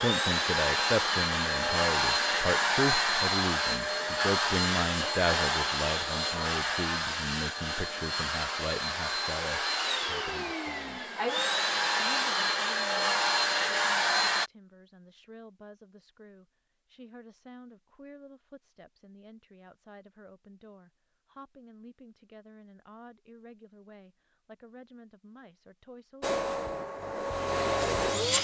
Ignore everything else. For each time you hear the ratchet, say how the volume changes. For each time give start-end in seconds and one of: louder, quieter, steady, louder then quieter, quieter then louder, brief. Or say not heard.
not heard.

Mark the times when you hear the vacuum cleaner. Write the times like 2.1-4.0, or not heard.
0.0-14.5, 26.2-28.3.